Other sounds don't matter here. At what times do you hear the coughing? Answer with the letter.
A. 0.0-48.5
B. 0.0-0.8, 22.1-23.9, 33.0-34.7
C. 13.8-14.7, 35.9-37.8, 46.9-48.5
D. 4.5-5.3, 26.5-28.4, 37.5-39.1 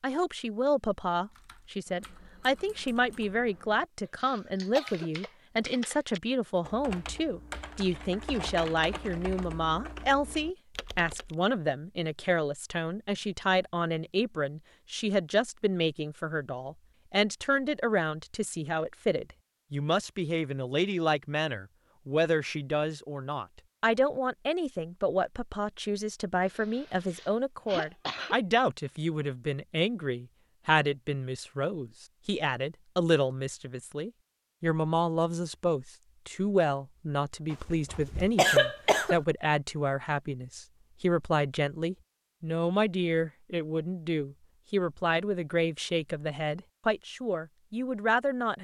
D.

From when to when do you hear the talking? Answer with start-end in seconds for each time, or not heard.
0.0-48.5.